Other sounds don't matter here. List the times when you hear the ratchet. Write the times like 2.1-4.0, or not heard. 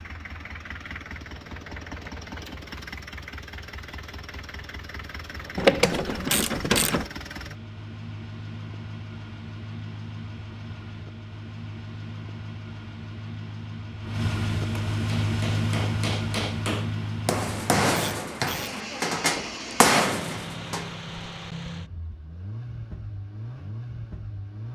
5.5-7.0, 17.9-18.8.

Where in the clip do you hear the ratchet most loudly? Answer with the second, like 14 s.
6 s.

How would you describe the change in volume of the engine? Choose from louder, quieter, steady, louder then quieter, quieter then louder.
louder then quieter.